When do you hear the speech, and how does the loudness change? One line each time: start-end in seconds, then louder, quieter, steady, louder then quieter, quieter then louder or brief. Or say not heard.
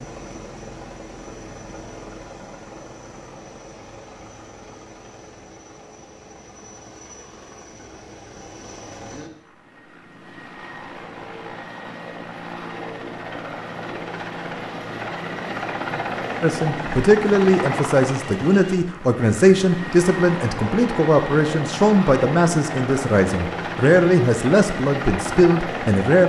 16.4-26.2 steady.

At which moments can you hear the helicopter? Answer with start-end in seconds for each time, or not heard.
0.0-26.2.